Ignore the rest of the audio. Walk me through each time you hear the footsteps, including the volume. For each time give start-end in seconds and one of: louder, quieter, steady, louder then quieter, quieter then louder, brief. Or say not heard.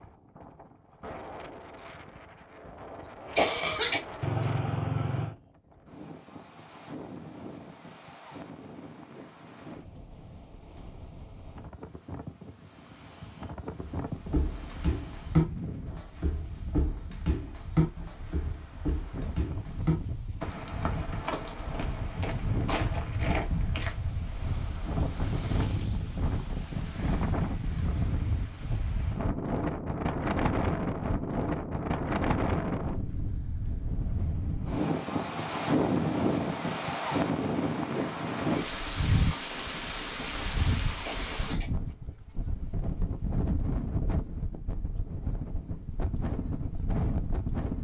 13.8-24.2 quieter.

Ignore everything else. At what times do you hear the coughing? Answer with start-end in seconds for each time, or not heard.
3.4-4.0, 41.0-41.7.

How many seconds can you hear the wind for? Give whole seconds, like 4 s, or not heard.
48 s.